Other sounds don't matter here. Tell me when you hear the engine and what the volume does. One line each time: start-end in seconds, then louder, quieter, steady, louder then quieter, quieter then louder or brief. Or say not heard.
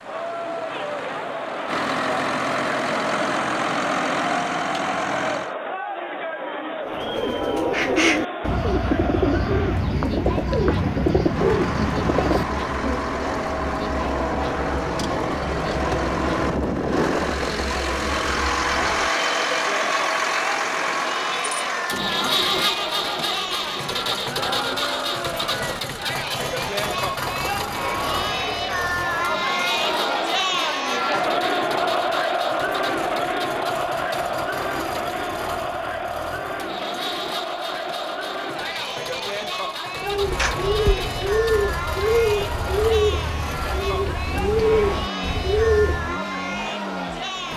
0.0-5.5 louder
11.2-47.5 quieter.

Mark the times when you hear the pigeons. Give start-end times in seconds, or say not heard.
6.8-13.1, 40.0-46.2.